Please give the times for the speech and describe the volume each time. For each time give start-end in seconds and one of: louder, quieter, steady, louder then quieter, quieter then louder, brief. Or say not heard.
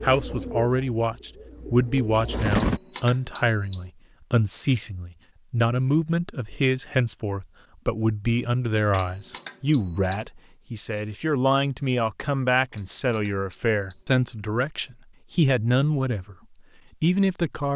0.0-16.4 steady
17.0-17.7 brief.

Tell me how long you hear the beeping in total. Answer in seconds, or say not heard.
4 s.